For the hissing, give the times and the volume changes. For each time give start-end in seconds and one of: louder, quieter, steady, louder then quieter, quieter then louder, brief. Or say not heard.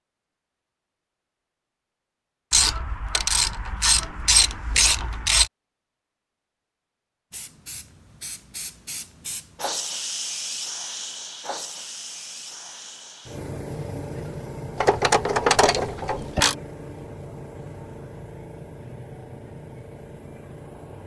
7.3-21.0 quieter.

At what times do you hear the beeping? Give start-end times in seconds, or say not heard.
not heard.